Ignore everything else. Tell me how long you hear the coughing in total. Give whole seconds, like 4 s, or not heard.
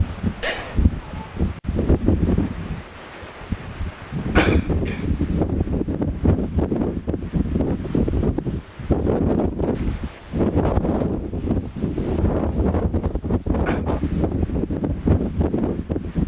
2 s.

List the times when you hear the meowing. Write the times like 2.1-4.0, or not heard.
0.4-1.3.